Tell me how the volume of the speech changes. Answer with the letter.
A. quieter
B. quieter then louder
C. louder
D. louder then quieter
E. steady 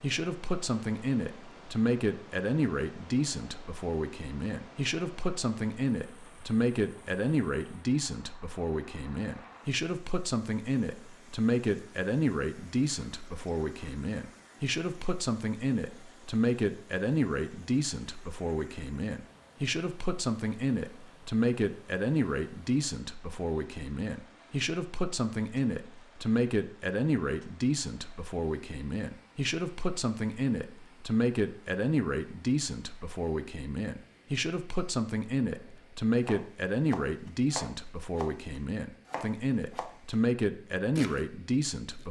E.